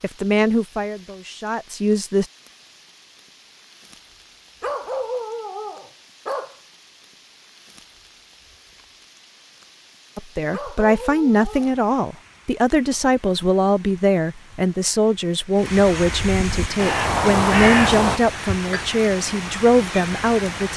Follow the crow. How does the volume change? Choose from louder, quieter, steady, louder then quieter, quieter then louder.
louder then quieter.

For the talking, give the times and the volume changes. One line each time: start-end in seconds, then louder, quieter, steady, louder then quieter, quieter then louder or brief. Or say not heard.
0.0-2.2 brief
10.2-20.7 steady.